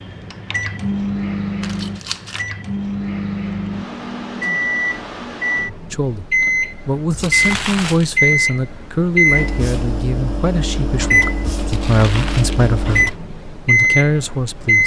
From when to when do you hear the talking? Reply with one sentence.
The talking can be heard from 5.9 to 14.8 s.